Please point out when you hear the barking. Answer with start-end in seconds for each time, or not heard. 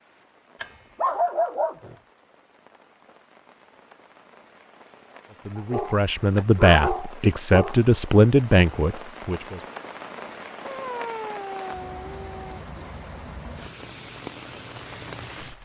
0.6-1.9, 5.5-7.8, 10.6-12.6.